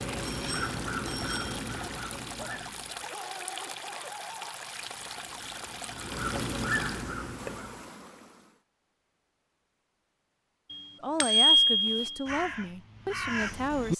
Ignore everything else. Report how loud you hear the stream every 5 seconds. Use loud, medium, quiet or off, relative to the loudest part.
loud, loud, off.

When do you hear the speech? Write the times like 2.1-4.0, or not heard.
11.0-13.9.